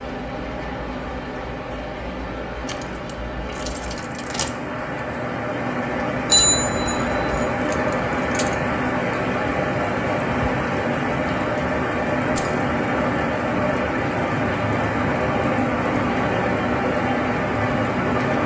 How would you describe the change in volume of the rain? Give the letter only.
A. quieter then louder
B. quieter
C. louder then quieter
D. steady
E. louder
E.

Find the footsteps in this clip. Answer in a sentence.
The footsteps can't be heard in this clip.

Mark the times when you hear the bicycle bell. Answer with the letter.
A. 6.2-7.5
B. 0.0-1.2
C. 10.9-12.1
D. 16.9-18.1
A.